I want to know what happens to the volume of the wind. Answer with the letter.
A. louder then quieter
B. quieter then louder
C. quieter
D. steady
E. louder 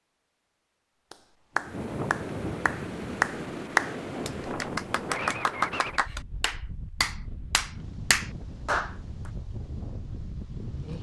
C.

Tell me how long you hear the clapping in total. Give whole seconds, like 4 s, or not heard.
8 s.